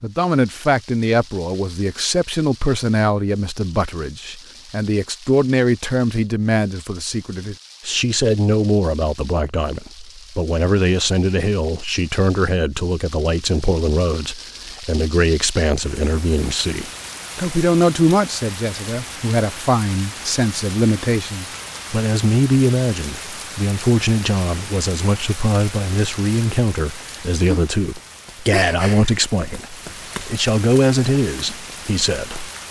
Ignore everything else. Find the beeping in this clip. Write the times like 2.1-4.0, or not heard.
not heard.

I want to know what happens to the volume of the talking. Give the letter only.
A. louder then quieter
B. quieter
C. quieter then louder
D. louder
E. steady
E.